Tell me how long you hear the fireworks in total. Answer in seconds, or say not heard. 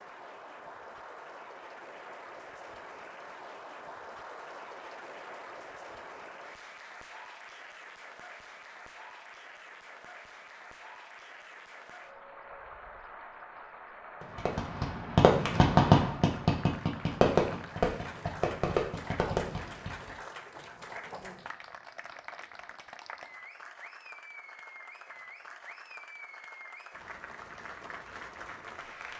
6 s.